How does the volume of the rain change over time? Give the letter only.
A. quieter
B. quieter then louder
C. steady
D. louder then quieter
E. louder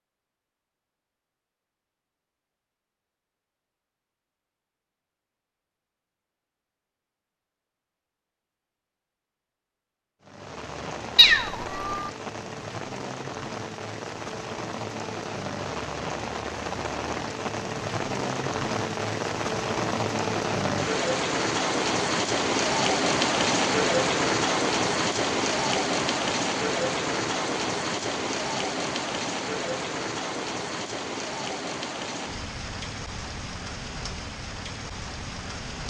D.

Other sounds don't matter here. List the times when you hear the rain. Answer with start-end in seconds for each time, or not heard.
10.2-35.8.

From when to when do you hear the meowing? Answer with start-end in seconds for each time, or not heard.
11.2-12.0.